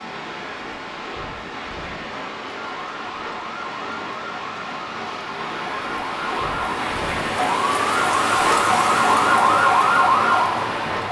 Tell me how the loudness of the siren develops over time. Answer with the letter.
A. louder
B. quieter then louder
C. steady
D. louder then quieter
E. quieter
A.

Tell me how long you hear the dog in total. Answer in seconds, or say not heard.
not heard.